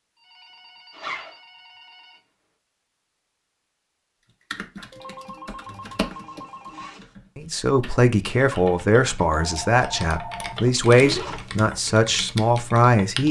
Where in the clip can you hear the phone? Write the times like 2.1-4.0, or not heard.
0.1-2.2, 4.9-6.9, 9.3-10.6.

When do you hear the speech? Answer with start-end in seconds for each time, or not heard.
7.3-13.2.